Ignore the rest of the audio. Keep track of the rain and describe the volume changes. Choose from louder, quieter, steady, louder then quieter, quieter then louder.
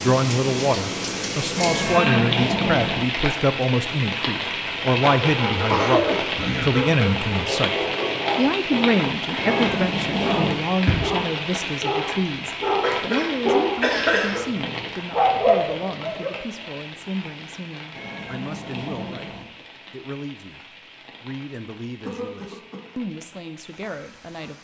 quieter.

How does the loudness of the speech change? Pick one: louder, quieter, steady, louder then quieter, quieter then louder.
quieter.